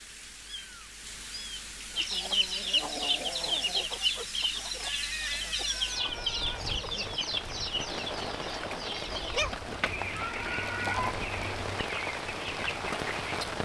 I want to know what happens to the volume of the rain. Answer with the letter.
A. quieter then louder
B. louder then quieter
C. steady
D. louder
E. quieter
D.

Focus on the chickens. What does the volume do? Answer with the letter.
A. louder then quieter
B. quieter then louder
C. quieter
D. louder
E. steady
C.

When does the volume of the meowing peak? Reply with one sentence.
The loudest moment of the meowing is at 11 seconds.